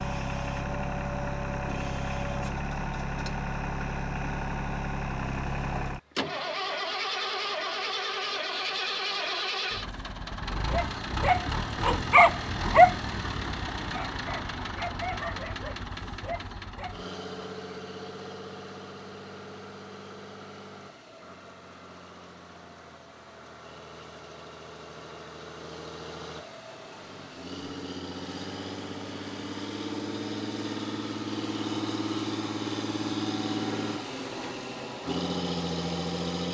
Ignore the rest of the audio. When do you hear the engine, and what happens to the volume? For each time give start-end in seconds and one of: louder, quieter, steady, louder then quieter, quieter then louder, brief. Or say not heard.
0.0-36.4 quieter then louder.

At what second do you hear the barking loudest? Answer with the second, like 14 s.
13 s.